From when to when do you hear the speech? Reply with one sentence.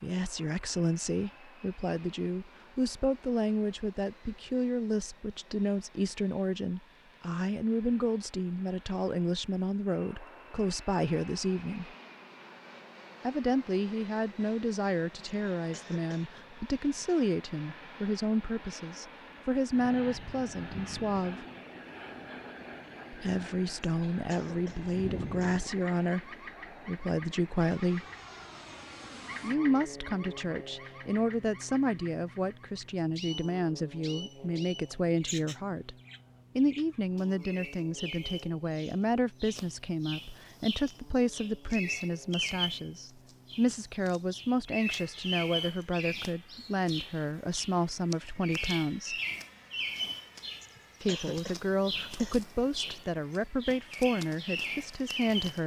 The speech can be heard from 0.0 to 11.9 s, from 13.2 to 21.4 s, from 23.1 to 28.1 s, from 29.4 to 36.0 s, from 36.5 to 49.2 s and from 51.0 to 55.6 s.